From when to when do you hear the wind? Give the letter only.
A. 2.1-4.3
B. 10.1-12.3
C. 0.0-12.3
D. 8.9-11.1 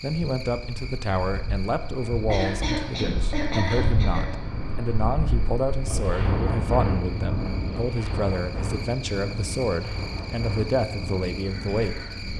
C.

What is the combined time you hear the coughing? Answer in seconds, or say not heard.
2 s.